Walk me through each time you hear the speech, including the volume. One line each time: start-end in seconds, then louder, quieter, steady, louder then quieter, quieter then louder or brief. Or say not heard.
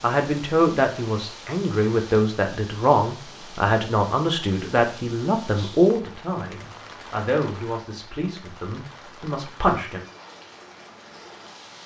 0.0-10.1 quieter.